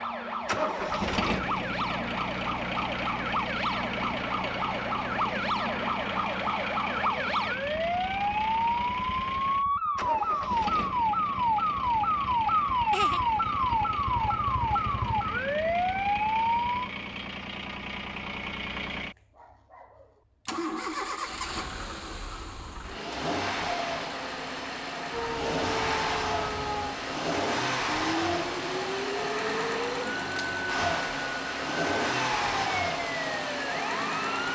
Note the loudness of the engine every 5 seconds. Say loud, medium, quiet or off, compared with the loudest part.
loud, medium, medium, medium, loud, loud, loud.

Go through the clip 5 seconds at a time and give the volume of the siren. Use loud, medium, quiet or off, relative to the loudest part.
medium, loud, loud, loud, off, medium, medium.